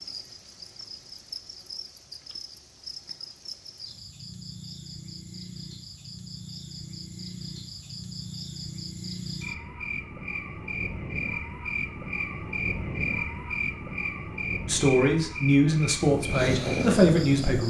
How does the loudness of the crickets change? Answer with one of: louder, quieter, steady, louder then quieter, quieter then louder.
louder.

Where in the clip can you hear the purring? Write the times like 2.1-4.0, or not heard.
16.0-17.6.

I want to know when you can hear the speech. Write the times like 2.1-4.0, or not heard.
14.7-17.6.